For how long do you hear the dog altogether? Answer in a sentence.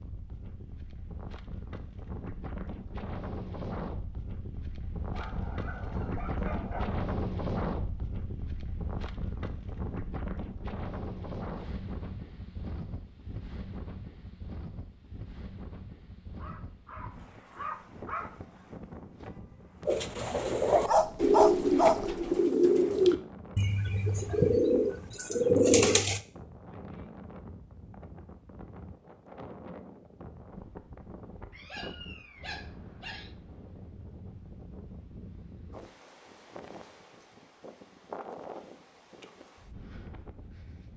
You can hear the dog for 7 seconds altogether.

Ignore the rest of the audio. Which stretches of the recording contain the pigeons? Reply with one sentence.
You can hear the pigeons from 19.9 to 26.2 s.